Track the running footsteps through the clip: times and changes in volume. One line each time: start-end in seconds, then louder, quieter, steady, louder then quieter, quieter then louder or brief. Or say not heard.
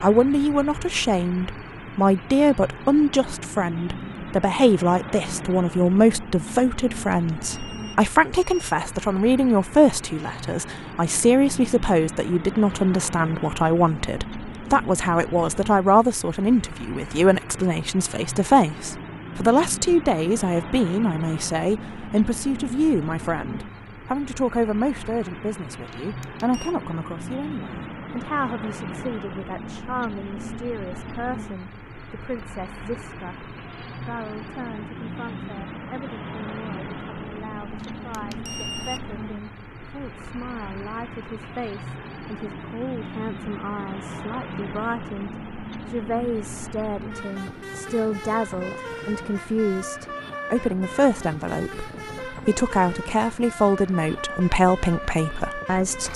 not heard.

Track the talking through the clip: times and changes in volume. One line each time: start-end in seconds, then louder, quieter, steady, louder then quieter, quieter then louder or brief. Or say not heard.
0.0-56.1 quieter then louder.